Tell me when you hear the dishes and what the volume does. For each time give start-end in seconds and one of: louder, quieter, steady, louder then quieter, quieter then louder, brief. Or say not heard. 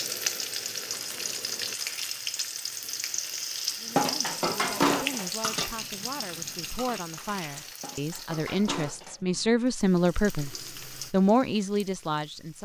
4.0-9.4 quieter then louder.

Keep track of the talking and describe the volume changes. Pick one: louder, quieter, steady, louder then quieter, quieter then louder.
louder.